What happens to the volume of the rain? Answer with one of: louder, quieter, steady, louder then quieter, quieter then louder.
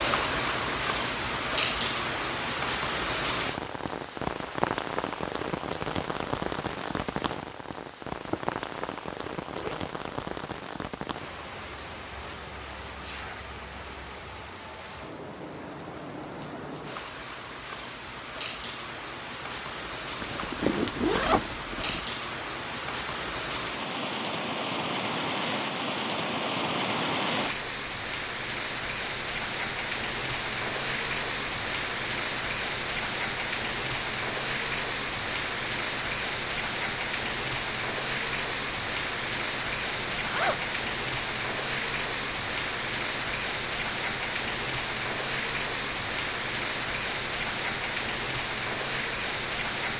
quieter then louder.